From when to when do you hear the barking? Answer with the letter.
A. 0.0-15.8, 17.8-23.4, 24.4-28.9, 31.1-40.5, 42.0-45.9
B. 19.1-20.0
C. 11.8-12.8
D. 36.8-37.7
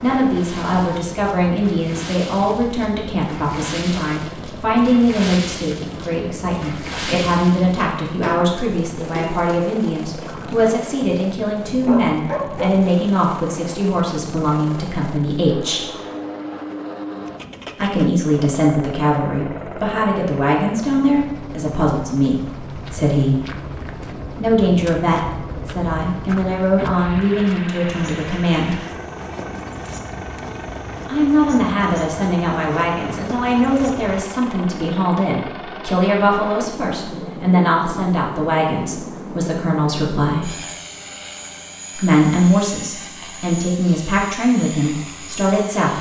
C.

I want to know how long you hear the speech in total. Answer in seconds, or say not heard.
39 s.